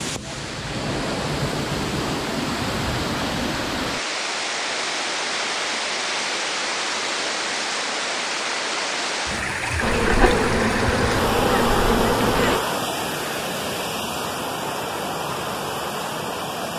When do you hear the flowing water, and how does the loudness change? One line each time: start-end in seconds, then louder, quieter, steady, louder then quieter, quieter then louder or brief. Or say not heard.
0.0-16.7 steady.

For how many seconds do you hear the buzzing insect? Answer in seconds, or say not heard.
3 s.